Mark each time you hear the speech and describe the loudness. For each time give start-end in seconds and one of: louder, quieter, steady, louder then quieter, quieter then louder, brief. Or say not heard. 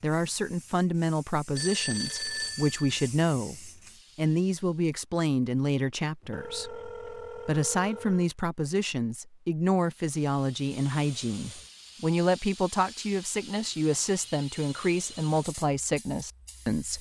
0.0-16.9 steady.